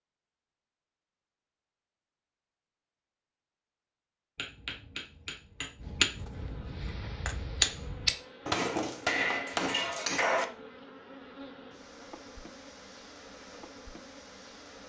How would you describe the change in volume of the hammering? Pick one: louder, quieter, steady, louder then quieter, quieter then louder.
louder.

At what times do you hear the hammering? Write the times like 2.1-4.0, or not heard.
4.3-10.4.